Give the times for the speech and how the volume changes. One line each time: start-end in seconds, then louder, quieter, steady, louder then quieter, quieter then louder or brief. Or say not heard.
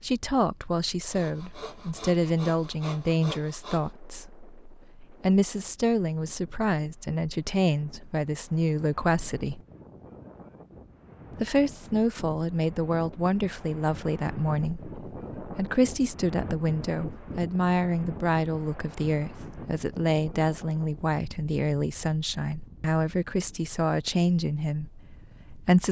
0.0-9.6 steady
11.4-25.8 steady.